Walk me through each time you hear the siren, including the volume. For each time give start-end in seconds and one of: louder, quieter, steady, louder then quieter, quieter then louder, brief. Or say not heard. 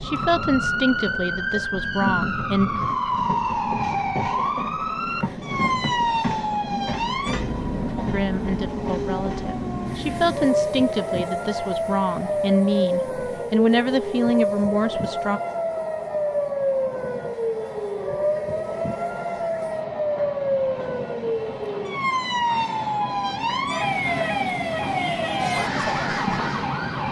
0.0-27.0 steady.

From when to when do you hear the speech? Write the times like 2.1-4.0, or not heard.
0.0-2.7, 8.1-15.4.